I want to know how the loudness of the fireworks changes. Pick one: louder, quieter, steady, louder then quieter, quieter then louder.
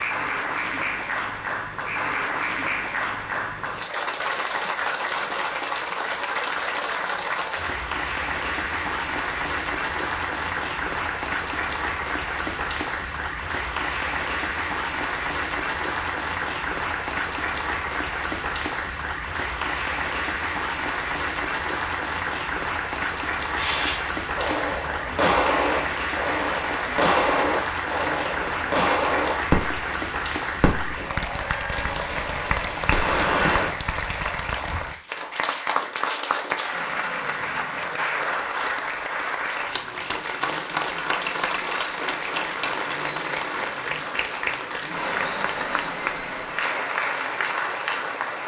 steady.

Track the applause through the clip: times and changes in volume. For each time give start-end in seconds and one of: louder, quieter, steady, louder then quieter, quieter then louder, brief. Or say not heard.
0.0-48.4 steady.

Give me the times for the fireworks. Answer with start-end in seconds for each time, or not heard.
23.6-29.9, 30.6-33.8.